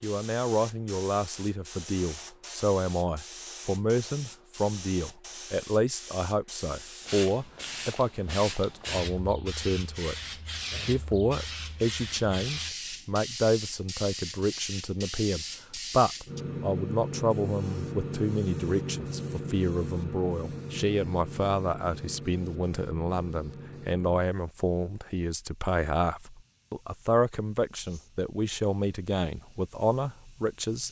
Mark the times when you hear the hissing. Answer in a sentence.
You can hear the hissing from 0.0 to 30.8 s.